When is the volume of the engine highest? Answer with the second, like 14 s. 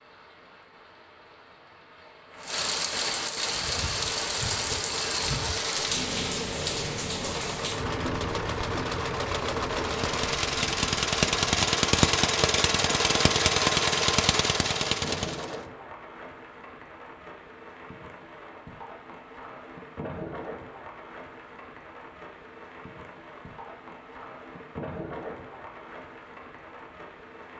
12 s.